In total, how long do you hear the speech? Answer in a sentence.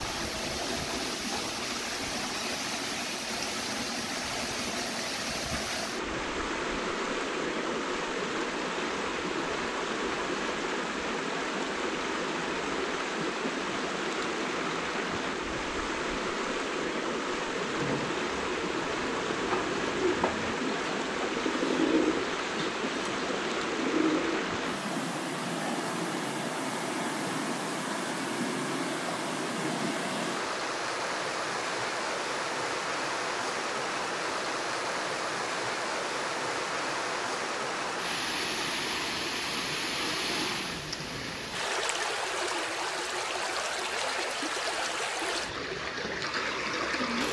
You can't hear the speech here.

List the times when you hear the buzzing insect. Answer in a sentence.
You can't hear the buzzing insect here.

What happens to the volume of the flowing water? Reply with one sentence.
The loudness of the flowing water stays about the same.